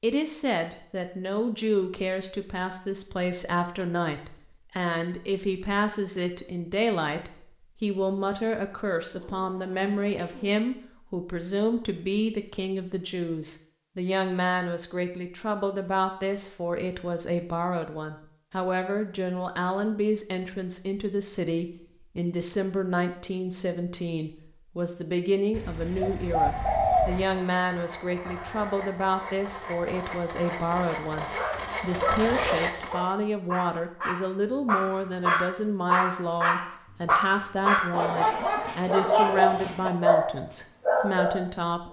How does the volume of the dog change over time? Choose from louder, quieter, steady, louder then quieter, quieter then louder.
louder.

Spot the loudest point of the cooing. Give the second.
27 s.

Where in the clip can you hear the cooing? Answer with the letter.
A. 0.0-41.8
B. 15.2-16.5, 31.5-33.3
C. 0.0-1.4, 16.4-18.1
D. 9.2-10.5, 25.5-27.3
D.